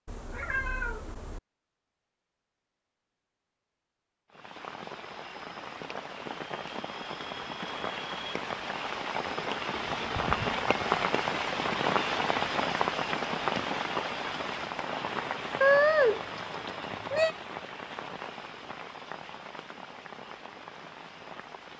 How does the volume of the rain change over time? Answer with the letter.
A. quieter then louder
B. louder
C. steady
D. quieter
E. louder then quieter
E.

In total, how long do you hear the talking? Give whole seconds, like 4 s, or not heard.
not heard.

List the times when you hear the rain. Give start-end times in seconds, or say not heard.
4.3-21.7.